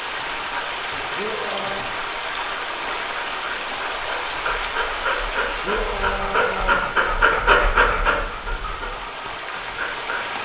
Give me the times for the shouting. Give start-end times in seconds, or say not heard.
1.1-1.9, 5.6-6.9.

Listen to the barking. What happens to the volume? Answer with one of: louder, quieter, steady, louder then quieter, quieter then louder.
louder then quieter.